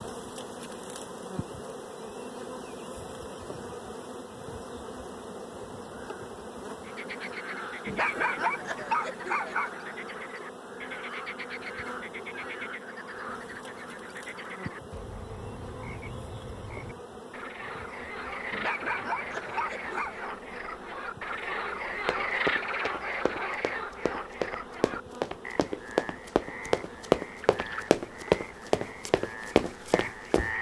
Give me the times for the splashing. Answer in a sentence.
The splashing can't be heard in this clip.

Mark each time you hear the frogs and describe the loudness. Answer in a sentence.
You can hear the frogs from 6.8 to 30.5 s, getting louder then quieter.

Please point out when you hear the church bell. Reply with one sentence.
The church bell can't be heard in this clip.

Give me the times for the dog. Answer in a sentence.
You can hear the dog from 7.8 to 9.8 s and from 18.5 to 20.3 s.